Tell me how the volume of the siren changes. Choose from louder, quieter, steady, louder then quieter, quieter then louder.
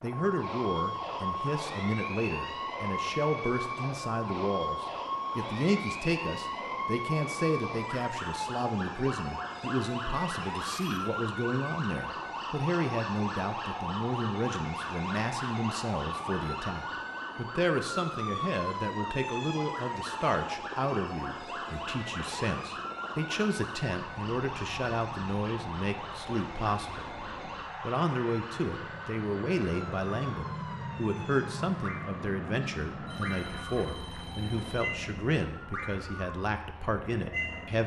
quieter.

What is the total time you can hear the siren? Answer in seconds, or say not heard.
38 s.